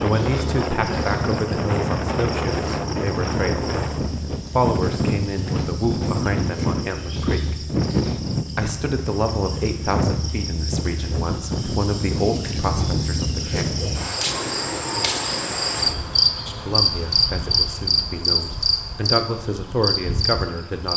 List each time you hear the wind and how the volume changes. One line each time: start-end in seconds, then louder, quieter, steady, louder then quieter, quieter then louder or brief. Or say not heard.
0.0-16.2 quieter.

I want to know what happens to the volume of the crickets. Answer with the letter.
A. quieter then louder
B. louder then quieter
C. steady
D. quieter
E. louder
E.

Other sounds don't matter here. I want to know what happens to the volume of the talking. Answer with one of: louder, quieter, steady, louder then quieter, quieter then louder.
steady.